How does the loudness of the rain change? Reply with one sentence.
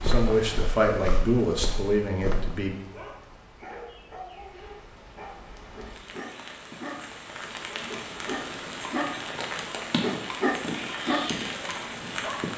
The volume of the rain goes down, then up.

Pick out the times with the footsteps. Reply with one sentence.
You can hear the footsteps from 0.0 to 2.5 s.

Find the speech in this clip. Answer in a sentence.
You can hear the speech from 0.0 to 2.8 s.